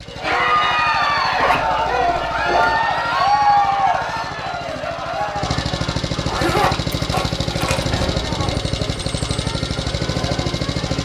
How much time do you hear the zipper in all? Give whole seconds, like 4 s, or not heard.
3 s.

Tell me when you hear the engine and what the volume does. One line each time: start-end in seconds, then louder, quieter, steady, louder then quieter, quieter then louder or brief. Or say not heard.
0.0-10.9 louder.